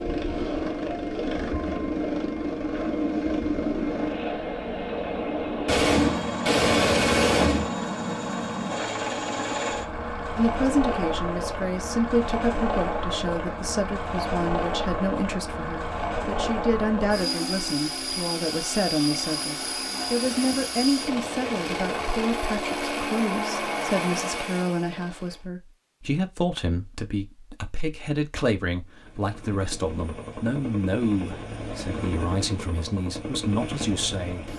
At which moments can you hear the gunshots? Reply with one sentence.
The gunshots can be heard from 5.7 to 7.7 s and from 20.2 to 22.2 s.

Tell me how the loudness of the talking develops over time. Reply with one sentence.
The loudness of the talking stays about the same.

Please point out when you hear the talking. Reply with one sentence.
You can hear the talking from 10.3 to 34.5 s.